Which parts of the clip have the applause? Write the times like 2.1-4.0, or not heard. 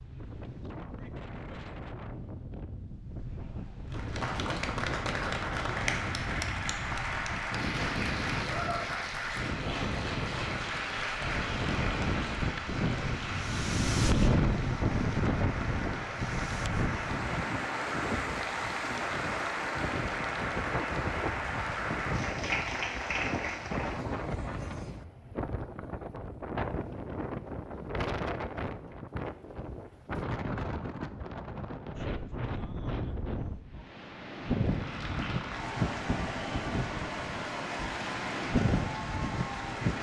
3.9-24.1, 34.5-39.9.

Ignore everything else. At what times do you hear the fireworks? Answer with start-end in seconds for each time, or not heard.
not heard.